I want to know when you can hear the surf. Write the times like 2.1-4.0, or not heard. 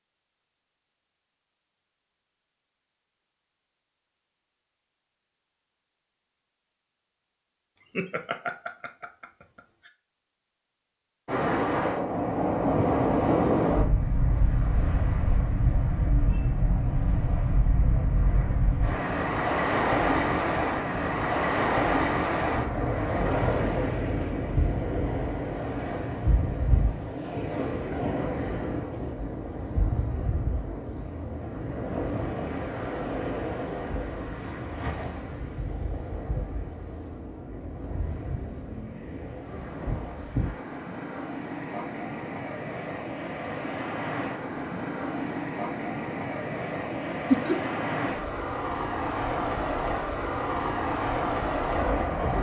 11.2-52.3.